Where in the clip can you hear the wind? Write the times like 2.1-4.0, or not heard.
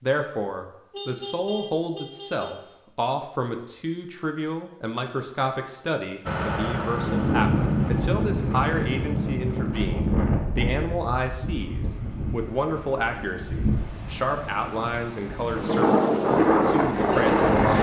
6.8-17.7.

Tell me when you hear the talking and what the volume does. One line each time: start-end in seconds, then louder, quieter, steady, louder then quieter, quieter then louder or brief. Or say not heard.
0.0-17.7 steady.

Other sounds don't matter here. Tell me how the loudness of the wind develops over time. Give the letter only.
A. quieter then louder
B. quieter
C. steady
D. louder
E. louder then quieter
A.